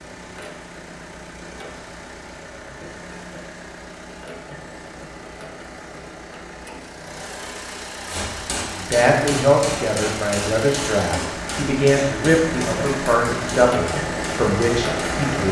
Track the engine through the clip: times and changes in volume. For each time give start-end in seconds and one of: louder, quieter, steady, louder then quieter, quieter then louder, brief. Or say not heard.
0.0-15.4 louder.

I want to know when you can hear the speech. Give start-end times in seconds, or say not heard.
8.8-15.4.